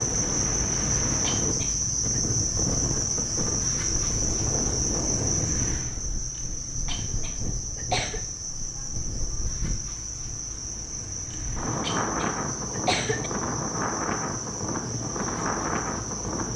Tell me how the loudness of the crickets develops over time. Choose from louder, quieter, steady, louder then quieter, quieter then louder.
quieter.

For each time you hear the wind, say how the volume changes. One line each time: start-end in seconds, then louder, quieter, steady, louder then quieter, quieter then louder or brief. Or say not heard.
0.0-16.5 quieter then louder.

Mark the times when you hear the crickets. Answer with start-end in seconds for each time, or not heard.
0.0-16.5.